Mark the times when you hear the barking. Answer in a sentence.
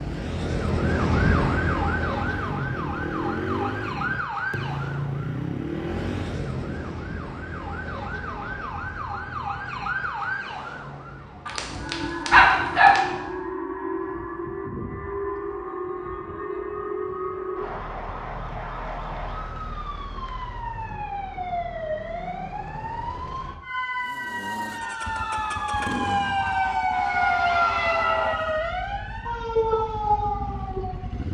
The barking can be heard from 11.4 to 13.0 s.